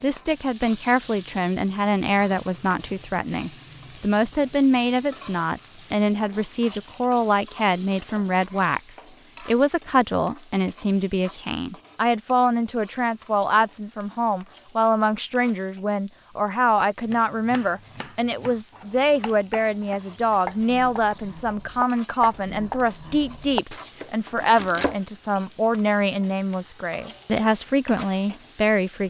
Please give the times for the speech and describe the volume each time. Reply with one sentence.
The speech can be heard from 0.0 to 29.0 s, at a steady volume.